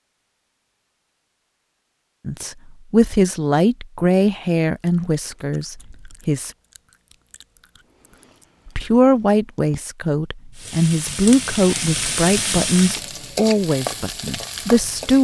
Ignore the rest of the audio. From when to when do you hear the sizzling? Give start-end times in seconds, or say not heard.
10.6-15.1.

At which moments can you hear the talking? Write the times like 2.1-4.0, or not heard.
2.2-6.5, 8.7-15.1.